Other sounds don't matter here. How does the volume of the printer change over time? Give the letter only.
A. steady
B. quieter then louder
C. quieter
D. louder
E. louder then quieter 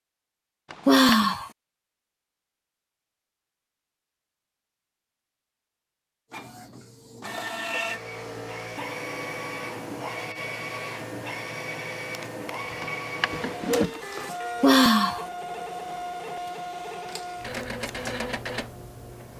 A.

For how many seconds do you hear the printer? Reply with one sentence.
You can hear the printer for 13 seconds altogether.